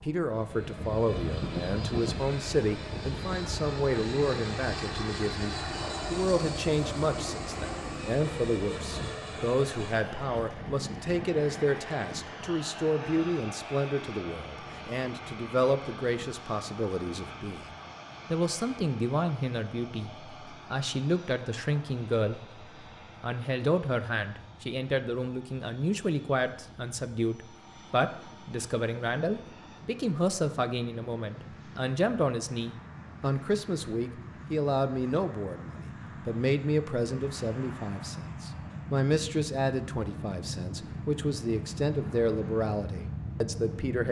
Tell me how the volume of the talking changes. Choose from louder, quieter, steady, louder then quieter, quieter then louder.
steady.